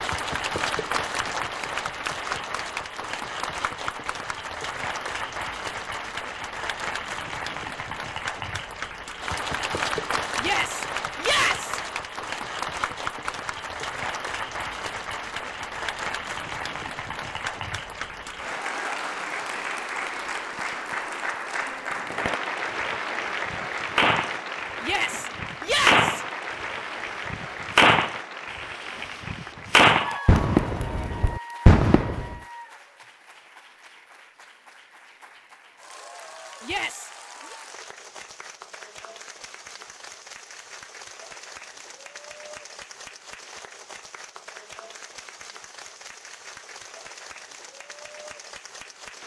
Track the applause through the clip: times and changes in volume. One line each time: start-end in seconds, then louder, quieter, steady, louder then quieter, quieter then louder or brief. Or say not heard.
0.0-49.2 quieter.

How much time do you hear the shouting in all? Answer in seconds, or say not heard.
4 s.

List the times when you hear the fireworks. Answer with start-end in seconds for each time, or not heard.
21.8-32.4.